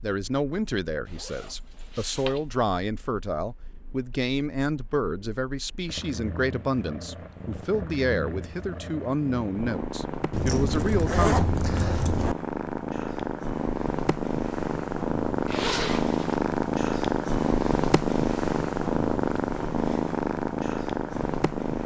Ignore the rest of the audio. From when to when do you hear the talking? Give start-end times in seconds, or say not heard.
0.0-11.4.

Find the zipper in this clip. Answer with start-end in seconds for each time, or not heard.
1.1-2.4, 10.3-12.3, 15.4-16.4.